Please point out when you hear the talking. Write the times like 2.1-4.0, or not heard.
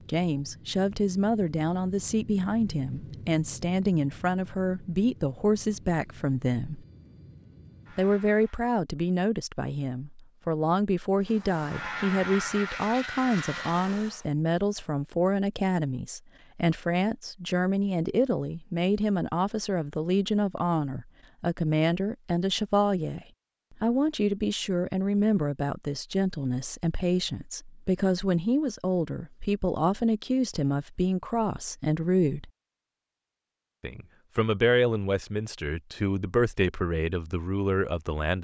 0.1-6.8, 8.0-32.5, 33.8-38.3.